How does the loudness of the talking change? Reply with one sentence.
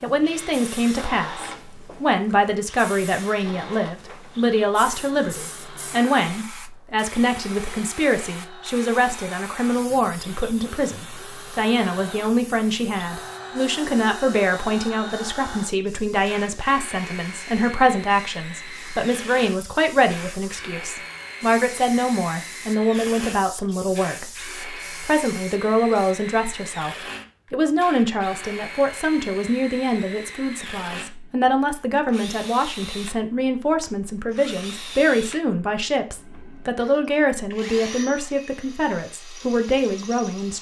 The loudness of the talking stays about the same.